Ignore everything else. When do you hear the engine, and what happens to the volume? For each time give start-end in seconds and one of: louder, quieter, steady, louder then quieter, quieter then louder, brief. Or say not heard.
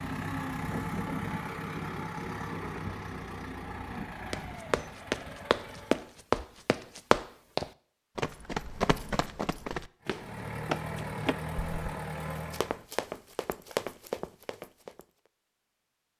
0.0-6.2 quieter
10.0-12.8 brief.